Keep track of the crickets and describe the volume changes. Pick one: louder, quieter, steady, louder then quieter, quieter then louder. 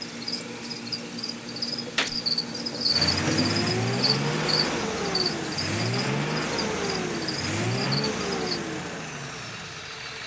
louder then quieter.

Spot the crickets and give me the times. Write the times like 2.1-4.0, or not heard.
0.0-8.6.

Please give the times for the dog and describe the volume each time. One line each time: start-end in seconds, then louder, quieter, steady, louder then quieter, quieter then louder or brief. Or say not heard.
not heard.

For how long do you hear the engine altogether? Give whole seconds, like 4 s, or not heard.
10 s.